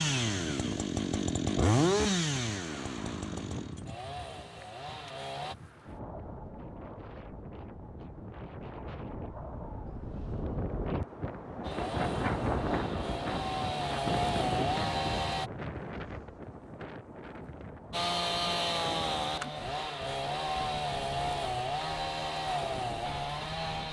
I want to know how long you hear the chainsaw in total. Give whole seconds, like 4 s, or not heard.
15 s.